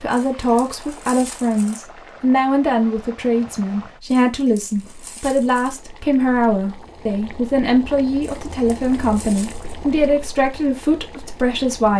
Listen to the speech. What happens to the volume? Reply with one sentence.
The volume of the speech stays about the same.